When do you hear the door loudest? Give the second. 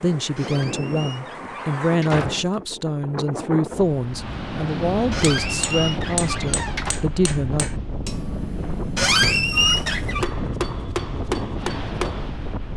9 s.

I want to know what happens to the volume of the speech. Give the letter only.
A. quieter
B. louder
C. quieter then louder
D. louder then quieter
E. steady
E.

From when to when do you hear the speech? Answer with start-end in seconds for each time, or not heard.
0.0-7.7.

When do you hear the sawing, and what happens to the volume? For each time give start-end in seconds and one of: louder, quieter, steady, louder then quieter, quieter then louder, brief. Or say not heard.
not heard.